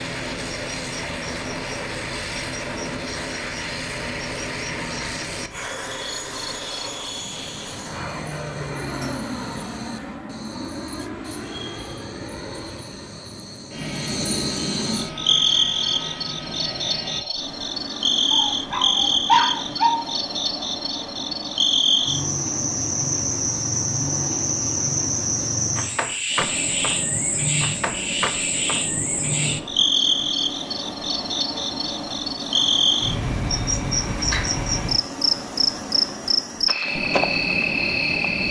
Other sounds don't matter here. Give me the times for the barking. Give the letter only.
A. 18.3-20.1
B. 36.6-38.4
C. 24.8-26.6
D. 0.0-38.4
A.